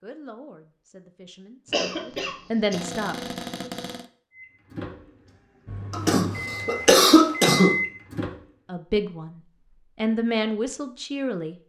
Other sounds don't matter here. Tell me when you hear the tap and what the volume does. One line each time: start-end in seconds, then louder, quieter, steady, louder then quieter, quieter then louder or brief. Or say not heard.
not heard.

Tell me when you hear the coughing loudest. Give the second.
7 s.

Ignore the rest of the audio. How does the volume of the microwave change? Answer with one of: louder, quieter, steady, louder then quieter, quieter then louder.
louder.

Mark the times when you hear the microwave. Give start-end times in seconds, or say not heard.
4.3-8.4.